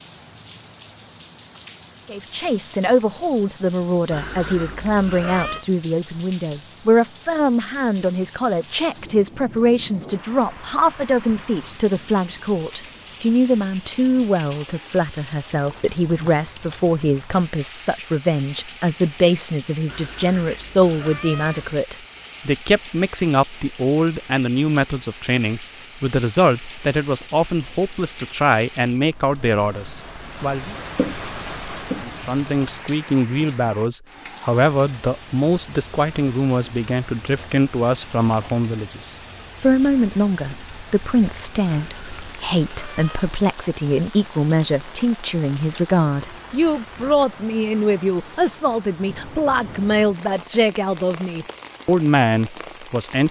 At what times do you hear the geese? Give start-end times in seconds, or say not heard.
not heard.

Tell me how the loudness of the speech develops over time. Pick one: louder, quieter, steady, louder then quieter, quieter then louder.
steady.